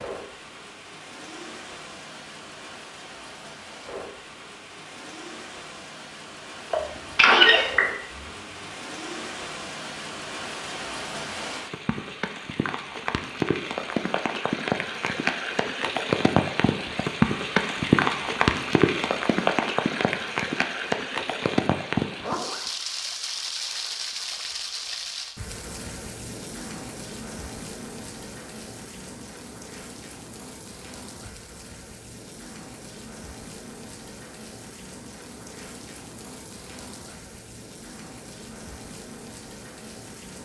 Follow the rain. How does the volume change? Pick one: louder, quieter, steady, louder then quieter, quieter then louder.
louder then quieter.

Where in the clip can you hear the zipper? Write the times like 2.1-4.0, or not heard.
8.1-8.8, 22.1-22.7.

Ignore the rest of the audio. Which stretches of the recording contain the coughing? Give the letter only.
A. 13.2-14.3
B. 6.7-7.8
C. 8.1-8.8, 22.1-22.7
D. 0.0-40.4
B.